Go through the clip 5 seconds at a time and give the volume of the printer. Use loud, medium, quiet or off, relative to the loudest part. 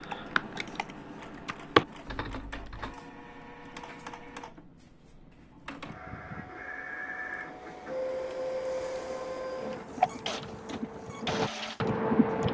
medium, loud, loud.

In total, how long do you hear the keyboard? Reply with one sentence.
You can hear the keyboard for 6 seconds altogether.